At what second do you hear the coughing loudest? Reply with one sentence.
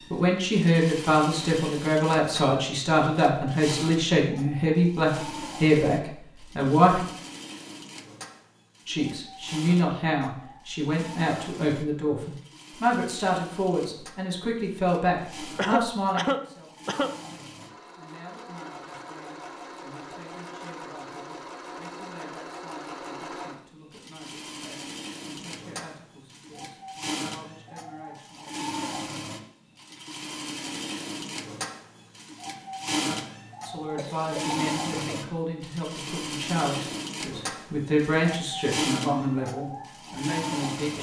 The loudest moment of the coughing is at 16 seconds.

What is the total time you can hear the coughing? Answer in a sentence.
You can hear the coughing for 3 seconds altogether.